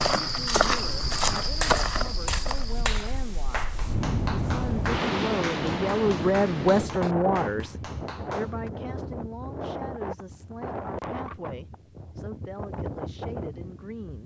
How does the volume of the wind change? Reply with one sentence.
The loudness of the wind goes up, then down.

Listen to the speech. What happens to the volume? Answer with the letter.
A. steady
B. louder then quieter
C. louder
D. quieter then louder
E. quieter
B.